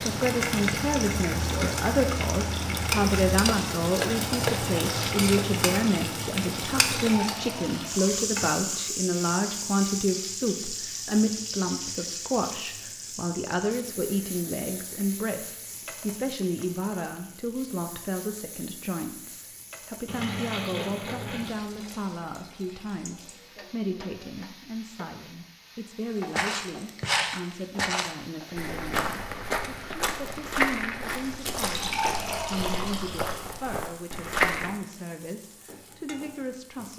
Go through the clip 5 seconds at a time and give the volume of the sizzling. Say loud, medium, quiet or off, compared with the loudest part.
loud, loud, medium, quiet, quiet, quiet, quiet, quiet.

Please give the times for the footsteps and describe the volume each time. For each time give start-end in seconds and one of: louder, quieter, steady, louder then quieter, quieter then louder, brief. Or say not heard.
26.3-34.7 quieter.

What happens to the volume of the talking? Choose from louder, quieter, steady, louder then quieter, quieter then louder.
quieter.